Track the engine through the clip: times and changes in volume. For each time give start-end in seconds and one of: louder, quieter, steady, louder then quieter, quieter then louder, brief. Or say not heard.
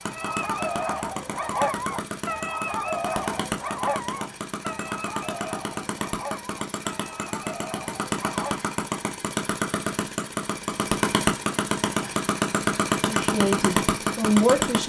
0.0-14.8 louder.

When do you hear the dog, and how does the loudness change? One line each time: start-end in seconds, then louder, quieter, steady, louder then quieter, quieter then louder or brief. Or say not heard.
0.1-8.6 quieter.